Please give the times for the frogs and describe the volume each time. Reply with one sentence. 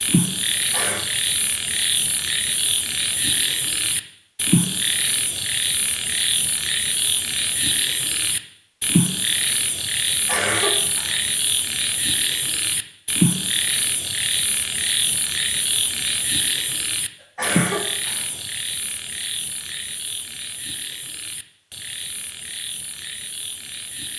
You can hear the frogs from 0.0 to 24.1 s, getting quieter.